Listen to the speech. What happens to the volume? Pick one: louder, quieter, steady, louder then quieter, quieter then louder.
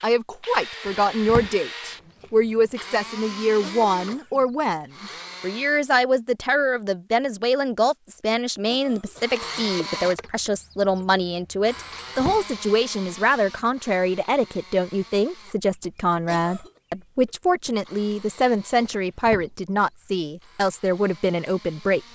steady.